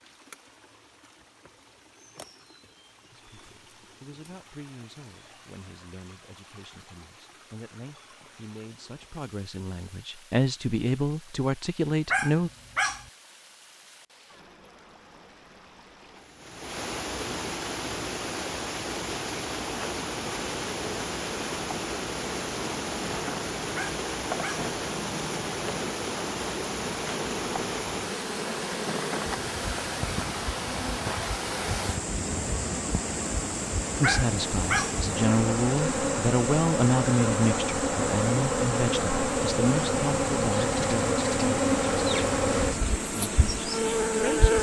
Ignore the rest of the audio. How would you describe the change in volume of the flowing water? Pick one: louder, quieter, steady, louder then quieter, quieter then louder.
louder.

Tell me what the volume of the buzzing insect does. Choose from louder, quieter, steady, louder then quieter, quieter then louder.
louder.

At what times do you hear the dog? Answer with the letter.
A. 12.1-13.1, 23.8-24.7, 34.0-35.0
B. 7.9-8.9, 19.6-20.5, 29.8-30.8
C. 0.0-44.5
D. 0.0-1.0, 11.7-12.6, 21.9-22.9
A.